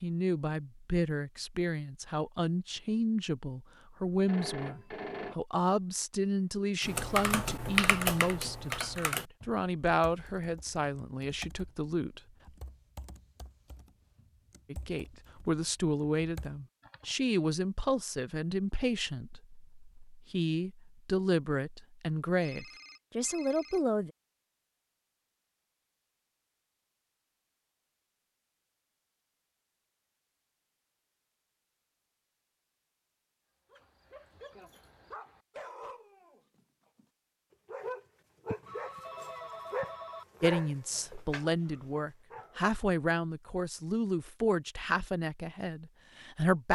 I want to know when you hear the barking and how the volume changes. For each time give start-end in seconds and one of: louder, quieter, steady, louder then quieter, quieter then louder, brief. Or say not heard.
33.7-42.6 louder then quieter.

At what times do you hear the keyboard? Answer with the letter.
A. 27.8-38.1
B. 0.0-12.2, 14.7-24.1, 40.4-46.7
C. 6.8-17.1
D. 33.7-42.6
C.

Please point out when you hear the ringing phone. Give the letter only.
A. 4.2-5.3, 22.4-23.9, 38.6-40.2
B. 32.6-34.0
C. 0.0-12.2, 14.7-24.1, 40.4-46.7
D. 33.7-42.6
A.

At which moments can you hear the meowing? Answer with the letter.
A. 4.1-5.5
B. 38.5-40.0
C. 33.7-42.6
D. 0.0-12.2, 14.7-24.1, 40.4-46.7
B.